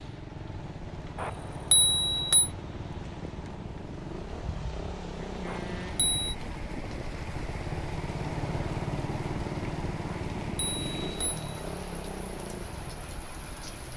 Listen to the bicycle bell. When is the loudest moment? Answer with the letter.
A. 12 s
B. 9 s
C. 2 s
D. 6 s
C.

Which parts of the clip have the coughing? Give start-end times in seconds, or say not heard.
not heard.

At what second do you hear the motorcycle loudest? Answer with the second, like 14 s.
9 s.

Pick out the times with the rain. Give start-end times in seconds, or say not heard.
0.0-13.9.